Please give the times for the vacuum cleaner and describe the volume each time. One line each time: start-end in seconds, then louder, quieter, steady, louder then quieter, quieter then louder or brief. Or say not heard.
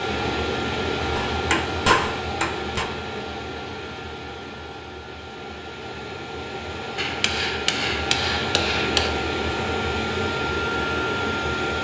0.0-11.7 quieter then louder.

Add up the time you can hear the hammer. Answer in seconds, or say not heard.
4 s.